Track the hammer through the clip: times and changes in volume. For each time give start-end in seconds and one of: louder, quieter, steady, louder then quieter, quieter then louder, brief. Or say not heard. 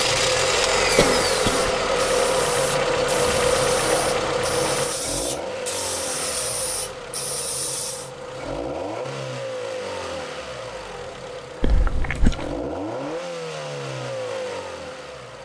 not heard.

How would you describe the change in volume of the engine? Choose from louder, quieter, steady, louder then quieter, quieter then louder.
quieter.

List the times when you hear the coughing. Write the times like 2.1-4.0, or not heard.
0.9-1.7, 11.6-12.6.